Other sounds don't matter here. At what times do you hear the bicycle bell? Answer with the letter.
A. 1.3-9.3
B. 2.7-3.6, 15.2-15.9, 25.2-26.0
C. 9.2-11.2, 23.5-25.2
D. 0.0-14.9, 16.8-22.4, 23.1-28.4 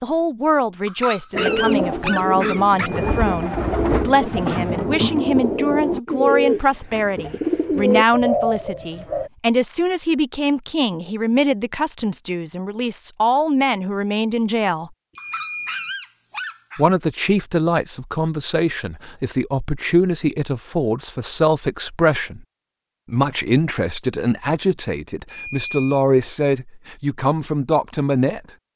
B.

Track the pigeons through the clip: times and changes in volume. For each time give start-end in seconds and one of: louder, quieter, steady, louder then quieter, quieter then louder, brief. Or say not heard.
1.3-9.3 steady.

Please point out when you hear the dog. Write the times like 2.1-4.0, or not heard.
0.8-2.9, 15.2-16.9.